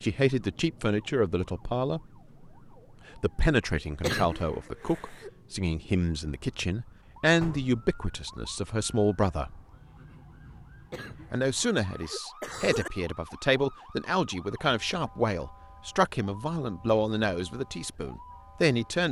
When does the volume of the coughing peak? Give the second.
4 s.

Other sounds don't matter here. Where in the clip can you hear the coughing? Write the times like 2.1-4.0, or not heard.
4.0-5.3, 10.9-12.9.